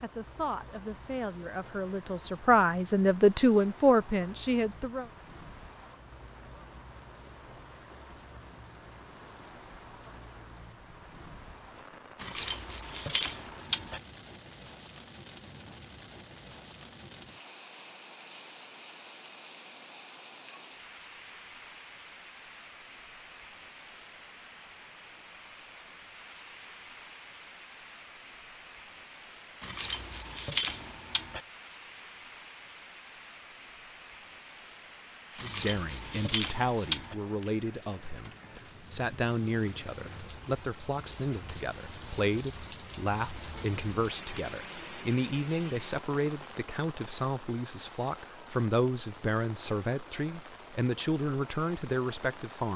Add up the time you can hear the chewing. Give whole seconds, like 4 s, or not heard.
not heard.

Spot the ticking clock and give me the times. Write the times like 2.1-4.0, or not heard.
not heard.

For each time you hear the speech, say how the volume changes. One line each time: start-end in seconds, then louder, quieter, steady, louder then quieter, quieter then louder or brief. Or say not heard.
0.0-5.1 louder
35.4-52.7 steady.